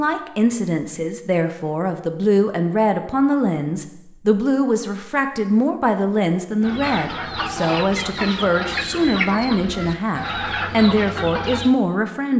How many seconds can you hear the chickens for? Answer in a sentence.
You can hear the chickens for 5 seconds altogether.